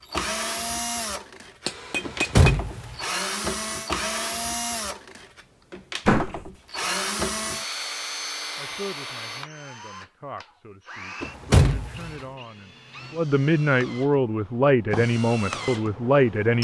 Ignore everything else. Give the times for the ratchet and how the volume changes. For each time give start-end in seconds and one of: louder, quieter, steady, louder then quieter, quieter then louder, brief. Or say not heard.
not heard.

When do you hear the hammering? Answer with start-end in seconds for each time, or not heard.
1.6-2.6.